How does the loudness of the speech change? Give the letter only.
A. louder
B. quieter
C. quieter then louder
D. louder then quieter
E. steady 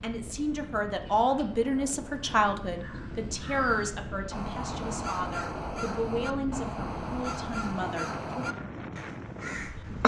B.